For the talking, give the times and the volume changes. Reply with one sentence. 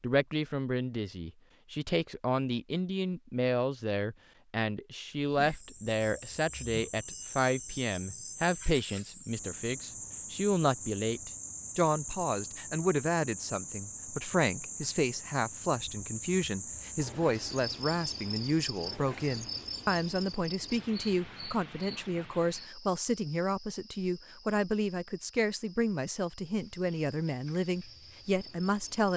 The talking can be heard from 0.0 to 29.1 s, at a steady volume.